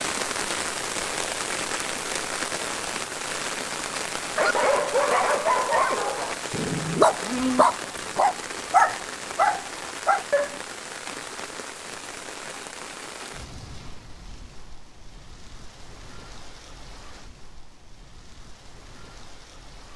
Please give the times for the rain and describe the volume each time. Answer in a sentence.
The rain can be heard from 0.0 to 19.9 s, getting quieter.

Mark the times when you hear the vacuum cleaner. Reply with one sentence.
The vacuum cleaner can't be heard in this clip.